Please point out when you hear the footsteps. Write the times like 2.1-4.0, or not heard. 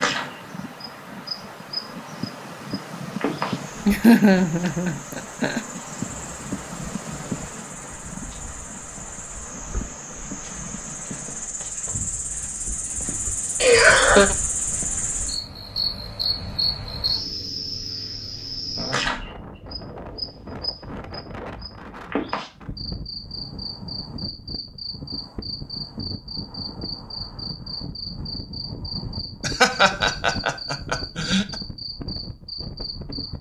not heard.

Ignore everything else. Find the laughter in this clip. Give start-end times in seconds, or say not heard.
3.9-5.6, 13.6-14.3, 29.4-31.6.